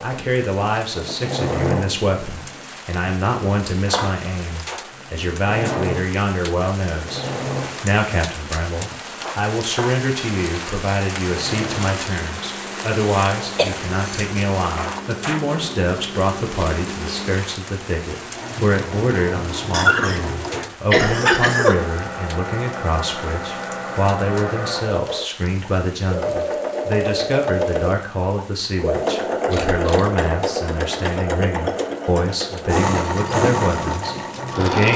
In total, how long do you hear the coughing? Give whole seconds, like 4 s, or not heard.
3 s.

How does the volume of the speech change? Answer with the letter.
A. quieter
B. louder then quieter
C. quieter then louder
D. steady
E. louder
D.